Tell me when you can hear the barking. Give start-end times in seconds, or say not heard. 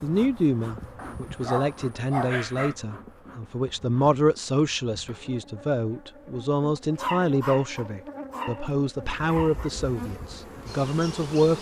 0.9-2.8, 7.0-8.7, 9.2-9.7.